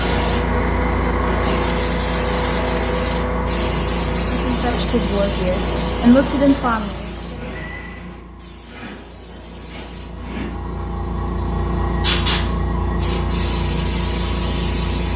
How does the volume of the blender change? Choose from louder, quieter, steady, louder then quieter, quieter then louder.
quieter.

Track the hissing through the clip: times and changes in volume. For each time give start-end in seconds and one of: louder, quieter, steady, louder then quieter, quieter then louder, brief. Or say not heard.
0.0-15.1 quieter then louder.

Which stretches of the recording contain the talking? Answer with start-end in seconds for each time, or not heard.
4.3-7.1.